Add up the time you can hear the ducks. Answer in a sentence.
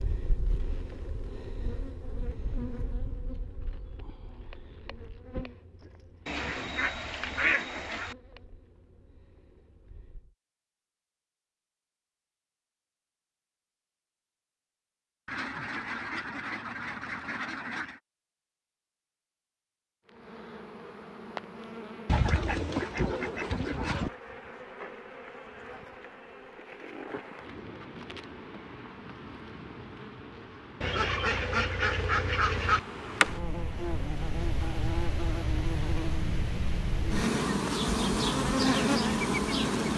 You can hear the ducks for 9 seconds altogether.